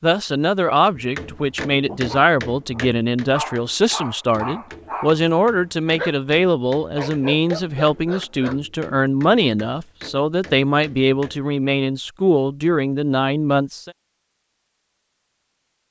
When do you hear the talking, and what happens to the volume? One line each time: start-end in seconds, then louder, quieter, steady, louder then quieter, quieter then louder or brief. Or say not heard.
0.0-13.9 steady.